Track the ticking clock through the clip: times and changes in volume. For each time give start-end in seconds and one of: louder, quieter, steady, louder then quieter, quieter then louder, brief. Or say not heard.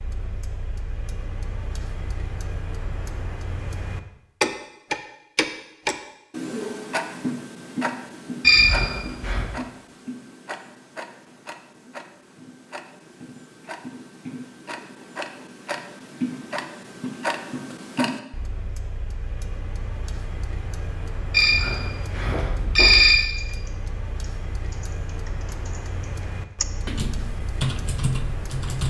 0.0-28.8 quieter.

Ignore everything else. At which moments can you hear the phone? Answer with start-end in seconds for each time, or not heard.
8.4-9.4, 21.3-23.1.